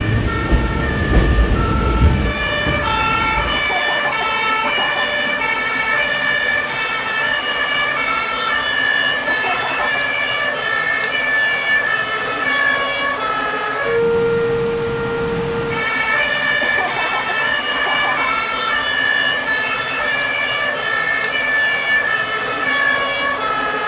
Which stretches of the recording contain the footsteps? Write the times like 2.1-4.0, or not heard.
not heard.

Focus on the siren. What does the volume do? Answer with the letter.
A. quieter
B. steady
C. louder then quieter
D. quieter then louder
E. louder
B.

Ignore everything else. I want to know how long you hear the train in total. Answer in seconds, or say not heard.
4 s.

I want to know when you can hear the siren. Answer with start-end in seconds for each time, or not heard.
0.0-23.8.